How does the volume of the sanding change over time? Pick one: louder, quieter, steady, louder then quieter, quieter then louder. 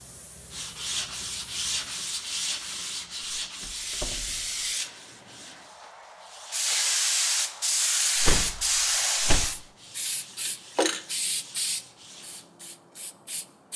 quieter.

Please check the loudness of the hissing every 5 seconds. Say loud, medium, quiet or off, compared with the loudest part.
medium, loud, medium.